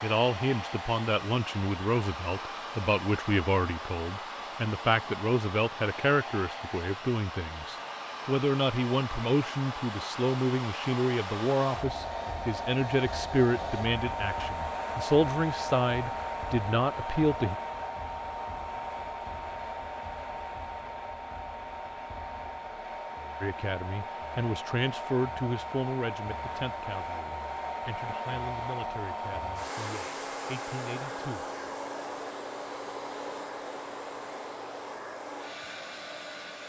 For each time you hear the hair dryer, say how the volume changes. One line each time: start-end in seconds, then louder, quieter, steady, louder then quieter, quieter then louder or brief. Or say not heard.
0.0-36.6 steady.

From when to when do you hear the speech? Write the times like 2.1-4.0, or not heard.
0.0-17.6, 23.4-31.4.